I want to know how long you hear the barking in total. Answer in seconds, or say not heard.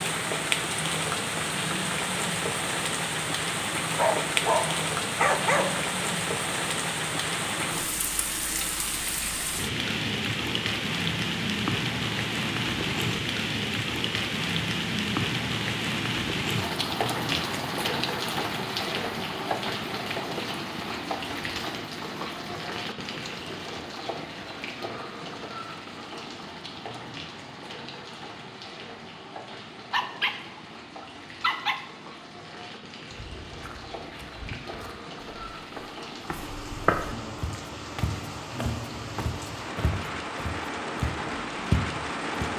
4 s.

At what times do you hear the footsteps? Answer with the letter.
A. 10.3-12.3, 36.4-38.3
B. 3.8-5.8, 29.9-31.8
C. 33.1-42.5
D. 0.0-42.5
C.